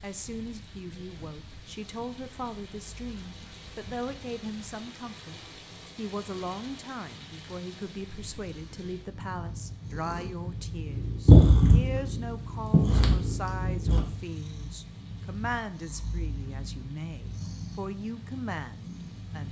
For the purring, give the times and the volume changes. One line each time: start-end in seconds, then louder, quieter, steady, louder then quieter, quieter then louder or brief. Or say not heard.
2.8-19.4 louder then quieter.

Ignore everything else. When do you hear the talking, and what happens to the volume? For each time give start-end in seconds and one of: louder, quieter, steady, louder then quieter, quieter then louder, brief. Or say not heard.
0.0-19.4 steady.